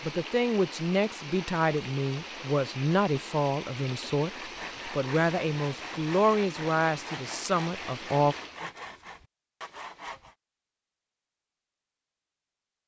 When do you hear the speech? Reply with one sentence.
You can hear the speech from 0.0 to 8.3 s.